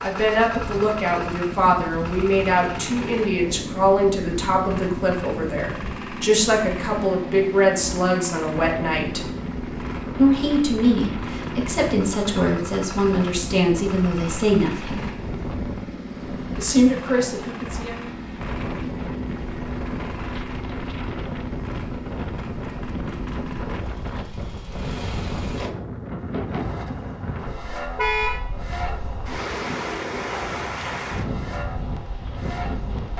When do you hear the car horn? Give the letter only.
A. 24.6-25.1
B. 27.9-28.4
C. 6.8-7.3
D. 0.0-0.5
B.